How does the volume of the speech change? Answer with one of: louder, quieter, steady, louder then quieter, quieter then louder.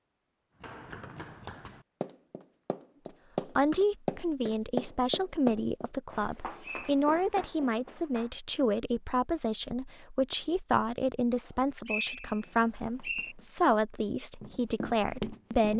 steady.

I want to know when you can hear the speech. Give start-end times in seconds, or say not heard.
3.5-15.7.